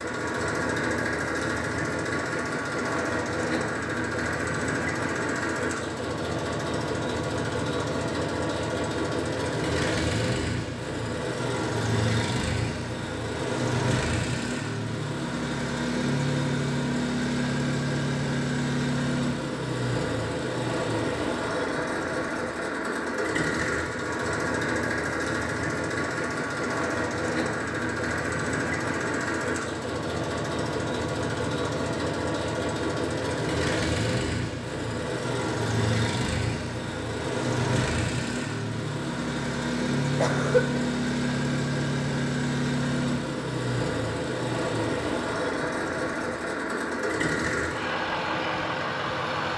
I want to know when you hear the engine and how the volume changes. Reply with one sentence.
You can hear the engine from 0.0 to 49.5 s, at a steady volume.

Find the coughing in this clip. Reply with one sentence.
The coughing can be heard from 40.1 to 40.8 s.